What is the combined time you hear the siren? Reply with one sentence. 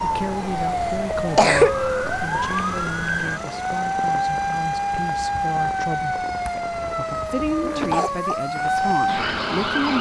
You can hear the siren for 10 seconds altogether.